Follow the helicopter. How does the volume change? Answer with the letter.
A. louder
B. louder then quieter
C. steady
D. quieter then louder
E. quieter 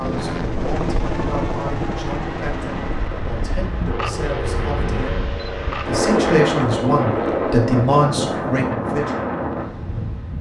E.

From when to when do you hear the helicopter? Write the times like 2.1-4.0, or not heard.
0.0-7.6.